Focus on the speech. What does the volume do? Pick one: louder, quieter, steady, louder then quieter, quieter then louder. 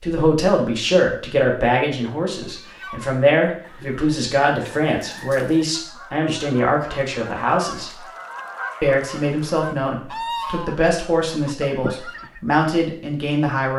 steady.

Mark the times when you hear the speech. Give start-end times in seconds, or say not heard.
0.0-8.0, 8.8-13.7.